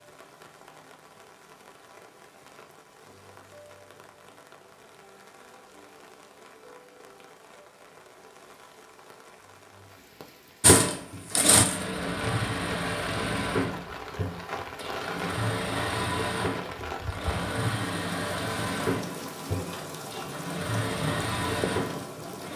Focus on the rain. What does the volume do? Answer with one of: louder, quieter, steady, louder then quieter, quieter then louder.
louder.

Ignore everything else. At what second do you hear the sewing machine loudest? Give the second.
11 s.